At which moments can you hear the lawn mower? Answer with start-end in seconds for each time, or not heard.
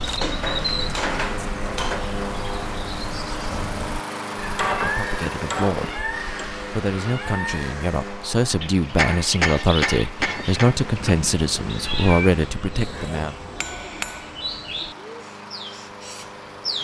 0.0-16.7.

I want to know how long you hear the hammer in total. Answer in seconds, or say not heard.
7 s.